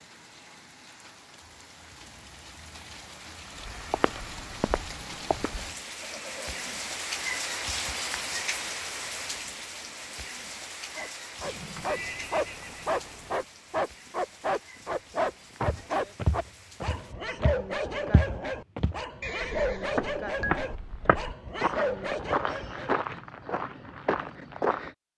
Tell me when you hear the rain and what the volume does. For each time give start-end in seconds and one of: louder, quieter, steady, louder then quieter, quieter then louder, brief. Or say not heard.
0.0-17.1 louder then quieter.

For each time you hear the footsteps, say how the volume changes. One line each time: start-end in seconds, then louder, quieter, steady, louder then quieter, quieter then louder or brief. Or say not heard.
3.7-5.7 brief
15.6-24.9 steady.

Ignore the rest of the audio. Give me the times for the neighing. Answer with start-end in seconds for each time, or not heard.
6.0-6.8, 11.4-13.4, 19.2-20.6.